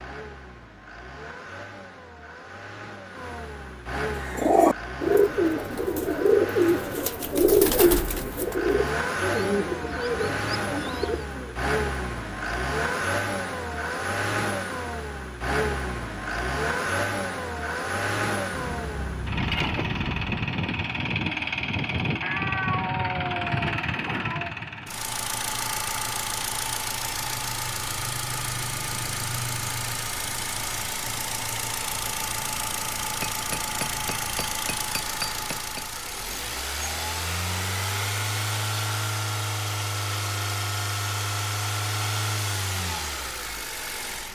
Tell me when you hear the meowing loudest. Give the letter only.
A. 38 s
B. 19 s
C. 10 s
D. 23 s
D.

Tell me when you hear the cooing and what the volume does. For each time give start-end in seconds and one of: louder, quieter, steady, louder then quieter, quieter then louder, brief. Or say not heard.
4.2-11.6 quieter.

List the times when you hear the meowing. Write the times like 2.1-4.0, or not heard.
18.5-20.4, 22.2-24.6.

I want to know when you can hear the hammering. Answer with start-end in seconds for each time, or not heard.
33.2-35.9.